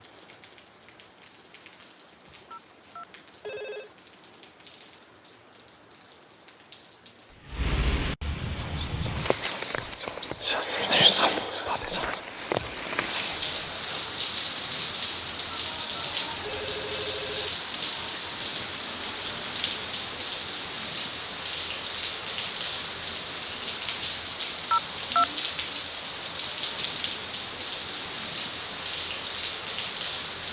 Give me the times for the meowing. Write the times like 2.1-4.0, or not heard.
not heard.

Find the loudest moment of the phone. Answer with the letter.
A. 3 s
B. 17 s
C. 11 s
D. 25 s
D.